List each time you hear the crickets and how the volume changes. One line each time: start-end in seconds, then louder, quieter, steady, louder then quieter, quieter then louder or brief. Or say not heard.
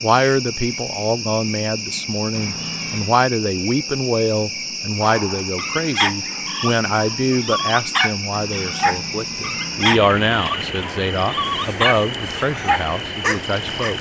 0.0-13.9 steady.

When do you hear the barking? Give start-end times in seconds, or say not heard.
5.0-13.9.